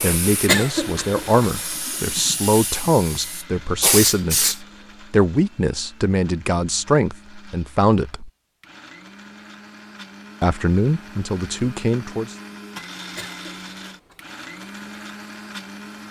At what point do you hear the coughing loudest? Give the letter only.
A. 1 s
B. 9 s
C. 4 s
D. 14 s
A.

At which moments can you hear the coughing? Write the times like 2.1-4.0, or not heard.
0.5-1.4, 13.1-14.2.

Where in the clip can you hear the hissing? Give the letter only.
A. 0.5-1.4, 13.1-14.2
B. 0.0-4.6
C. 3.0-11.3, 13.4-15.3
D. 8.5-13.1
B.